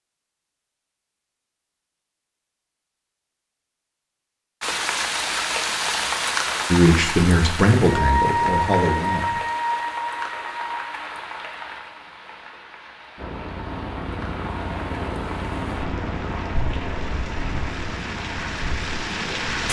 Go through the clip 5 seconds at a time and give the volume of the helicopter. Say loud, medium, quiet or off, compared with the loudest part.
off, off, loud, loud.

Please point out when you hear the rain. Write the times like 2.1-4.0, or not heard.
4.6-19.6.